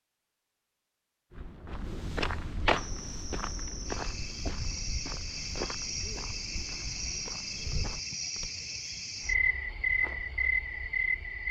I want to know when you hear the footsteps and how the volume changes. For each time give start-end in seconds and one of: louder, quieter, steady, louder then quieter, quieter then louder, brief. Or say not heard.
1.3-8.5 quieter.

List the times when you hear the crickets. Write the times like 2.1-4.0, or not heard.
2.8-11.4.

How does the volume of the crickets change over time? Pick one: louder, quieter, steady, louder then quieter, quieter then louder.
louder.